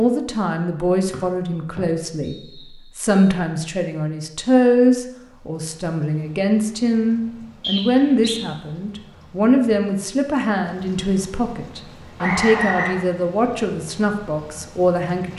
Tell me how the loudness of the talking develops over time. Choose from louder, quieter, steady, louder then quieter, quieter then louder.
steady.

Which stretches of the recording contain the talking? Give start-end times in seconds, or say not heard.
0.0-15.3.